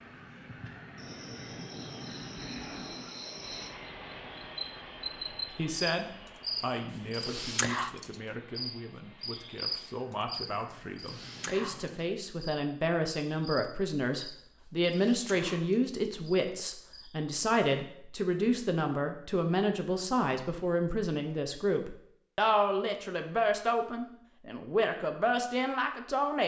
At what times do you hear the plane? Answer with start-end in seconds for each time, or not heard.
0.0-12.2.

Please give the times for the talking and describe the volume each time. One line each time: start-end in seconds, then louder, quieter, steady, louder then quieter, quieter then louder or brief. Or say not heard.
5.5-26.4 louder.